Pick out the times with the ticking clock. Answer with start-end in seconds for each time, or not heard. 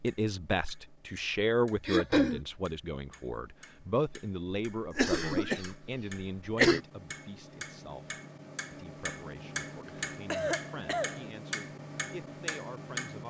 0.0-13.2.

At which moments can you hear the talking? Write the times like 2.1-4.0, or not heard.
0.0-13.2.